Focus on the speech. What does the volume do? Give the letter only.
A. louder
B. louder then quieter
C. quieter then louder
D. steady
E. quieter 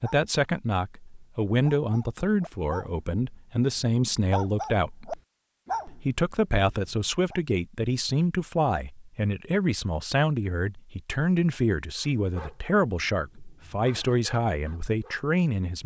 D.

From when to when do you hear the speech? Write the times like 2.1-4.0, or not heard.
0.0-5.2, 5.8-15.8.